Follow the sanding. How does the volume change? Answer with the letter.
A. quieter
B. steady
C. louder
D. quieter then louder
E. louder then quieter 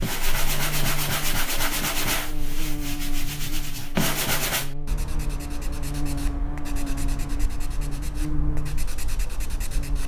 A.